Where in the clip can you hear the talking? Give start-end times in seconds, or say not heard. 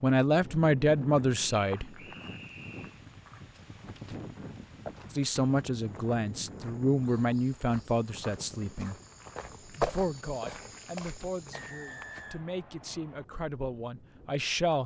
0.0-1.9, 5.1-8.9, 9.8-14.8.